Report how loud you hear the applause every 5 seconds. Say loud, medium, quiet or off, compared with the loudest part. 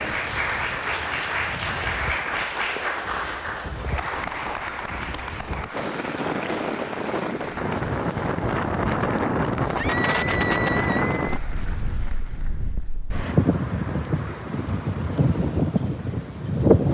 loud, medium, quiet, off.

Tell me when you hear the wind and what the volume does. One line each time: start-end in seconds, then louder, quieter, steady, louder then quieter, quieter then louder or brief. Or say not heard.
0.0-16.8 louder.